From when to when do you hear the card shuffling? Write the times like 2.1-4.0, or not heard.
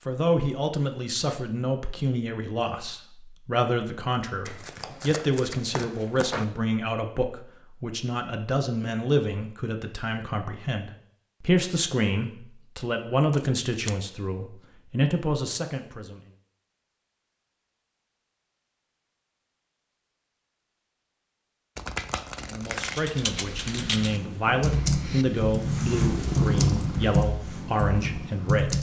4.5-6.5, 13.3-13.9, 21.8-23.0.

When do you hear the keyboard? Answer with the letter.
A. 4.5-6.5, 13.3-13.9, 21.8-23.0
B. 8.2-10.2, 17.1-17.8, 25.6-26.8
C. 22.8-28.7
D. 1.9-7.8
C.